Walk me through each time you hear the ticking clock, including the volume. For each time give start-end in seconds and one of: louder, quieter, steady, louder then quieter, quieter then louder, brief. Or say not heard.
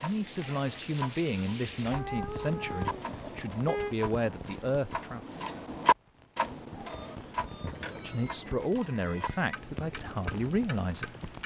0.0-11.4 louder then quieter.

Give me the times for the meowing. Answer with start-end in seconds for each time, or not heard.
1.9-3.2, 7.6-9.6.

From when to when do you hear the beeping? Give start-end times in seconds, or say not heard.
2.8-4.0, 6.8-8.5.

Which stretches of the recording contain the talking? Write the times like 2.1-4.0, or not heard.
0.0-5.2, 8.0-11.1.